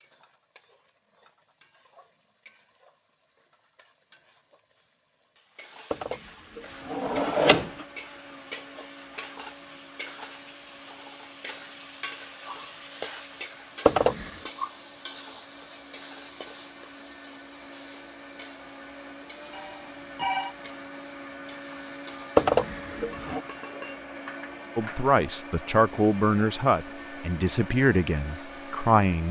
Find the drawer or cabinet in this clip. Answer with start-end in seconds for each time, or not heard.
5.9-7.8, 13.8-14.3, 22.4-23.4.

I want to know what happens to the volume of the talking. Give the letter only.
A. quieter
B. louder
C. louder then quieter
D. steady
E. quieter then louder
A.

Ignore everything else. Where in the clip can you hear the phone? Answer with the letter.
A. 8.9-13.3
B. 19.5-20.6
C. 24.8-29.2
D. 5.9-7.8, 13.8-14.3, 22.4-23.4
B.